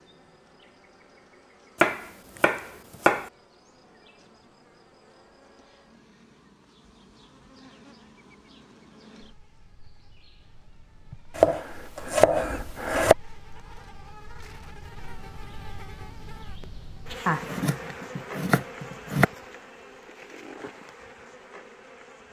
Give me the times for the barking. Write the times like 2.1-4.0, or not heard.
not heard.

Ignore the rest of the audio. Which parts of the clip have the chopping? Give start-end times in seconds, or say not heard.
1.8-3.3, 11.3-13.2, 17.2-19.2.